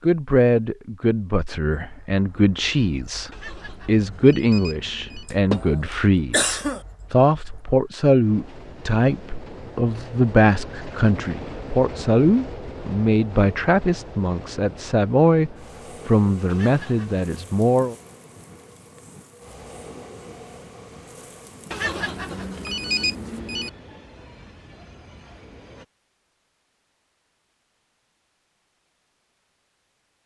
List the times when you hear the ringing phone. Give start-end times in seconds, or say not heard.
3.3-5.3, 16.4-17.2, 21.7-23.7.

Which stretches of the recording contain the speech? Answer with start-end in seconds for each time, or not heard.
0.0-17.9.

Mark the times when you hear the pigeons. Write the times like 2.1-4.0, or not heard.
not heard.